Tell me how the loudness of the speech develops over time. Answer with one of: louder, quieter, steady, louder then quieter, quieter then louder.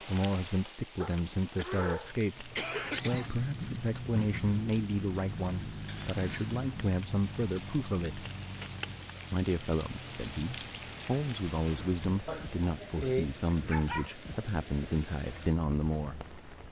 steady.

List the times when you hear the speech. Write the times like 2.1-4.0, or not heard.
0.1-8.3, 9.3-16.2.